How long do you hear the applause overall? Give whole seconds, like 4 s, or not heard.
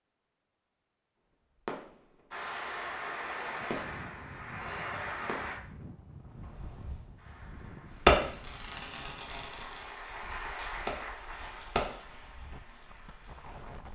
10 s.